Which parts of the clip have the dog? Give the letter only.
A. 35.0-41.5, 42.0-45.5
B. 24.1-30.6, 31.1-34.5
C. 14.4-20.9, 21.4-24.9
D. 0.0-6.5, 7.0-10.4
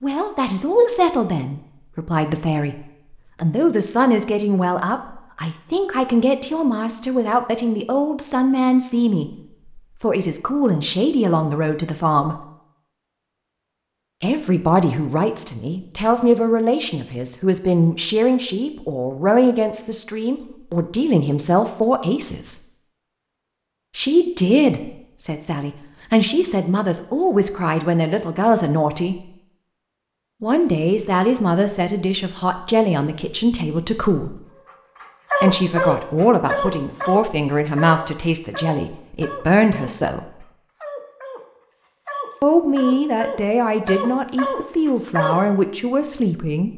A.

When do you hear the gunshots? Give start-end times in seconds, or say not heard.
not heard.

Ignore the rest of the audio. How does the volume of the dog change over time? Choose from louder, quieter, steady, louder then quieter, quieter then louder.
quieter then louder.